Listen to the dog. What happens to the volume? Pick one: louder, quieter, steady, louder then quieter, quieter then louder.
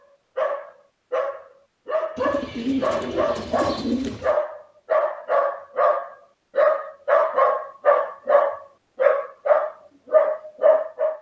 louder.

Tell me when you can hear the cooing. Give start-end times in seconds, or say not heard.
2.1-4.3.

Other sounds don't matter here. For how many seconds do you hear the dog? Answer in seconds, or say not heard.
11 s.